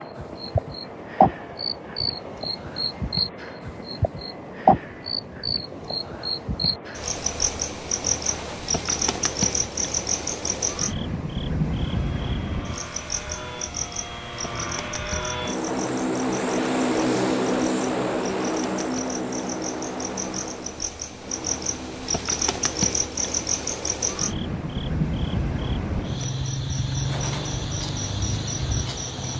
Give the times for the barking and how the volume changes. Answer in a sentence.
The barking can't be heard in this clip.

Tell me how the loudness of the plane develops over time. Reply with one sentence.
The loudness of the plane goes up, then down.